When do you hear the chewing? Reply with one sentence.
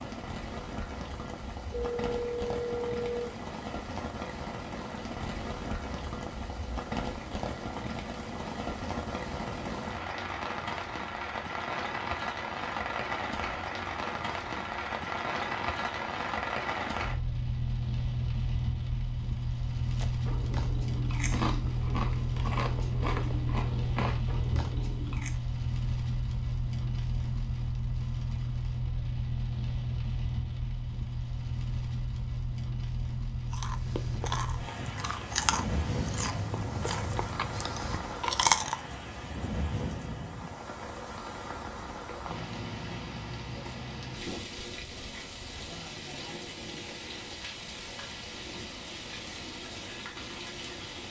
You can hear the chewing from 19.9 to 25.4 s and from 33.5 to 38.9 s.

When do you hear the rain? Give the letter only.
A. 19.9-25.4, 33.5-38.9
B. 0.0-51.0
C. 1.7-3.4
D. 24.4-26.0
B.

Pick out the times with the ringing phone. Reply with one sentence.
You can hear the ringing phone from 1.7 to 3.4 s.